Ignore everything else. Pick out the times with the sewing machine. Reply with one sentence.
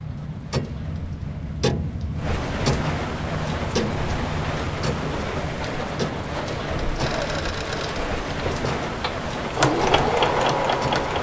The sewing machine can be heard from 7.0 to 11.1 s.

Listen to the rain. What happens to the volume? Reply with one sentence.
The volume of the rain goes up.